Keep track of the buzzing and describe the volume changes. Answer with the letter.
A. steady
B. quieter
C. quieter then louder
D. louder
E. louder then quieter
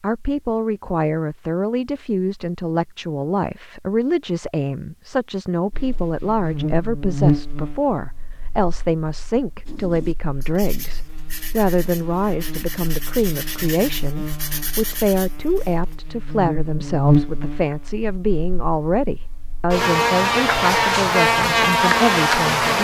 C.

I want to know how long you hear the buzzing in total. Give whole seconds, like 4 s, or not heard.
17 s.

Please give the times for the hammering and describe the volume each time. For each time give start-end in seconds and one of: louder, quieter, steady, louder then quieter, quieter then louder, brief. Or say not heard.
not heard.